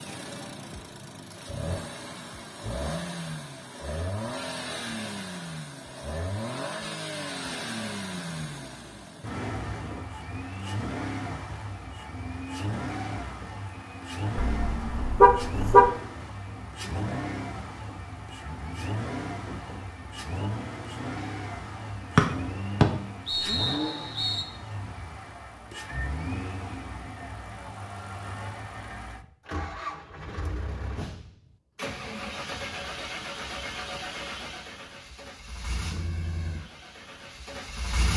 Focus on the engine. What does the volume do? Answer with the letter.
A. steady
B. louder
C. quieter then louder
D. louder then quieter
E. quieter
A.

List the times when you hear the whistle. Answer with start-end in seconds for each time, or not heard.
22.1-24.4.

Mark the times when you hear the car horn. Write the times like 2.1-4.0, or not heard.
14.3-15.9.